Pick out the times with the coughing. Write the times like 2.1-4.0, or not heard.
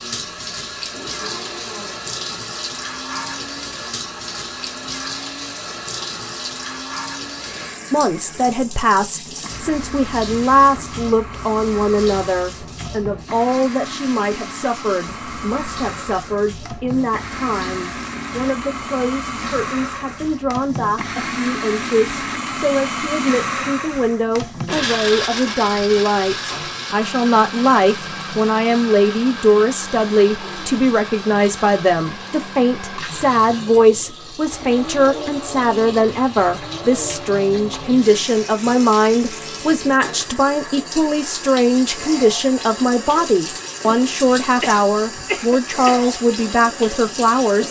44.6-46.0.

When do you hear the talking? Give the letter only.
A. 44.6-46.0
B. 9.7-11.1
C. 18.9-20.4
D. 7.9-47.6
D.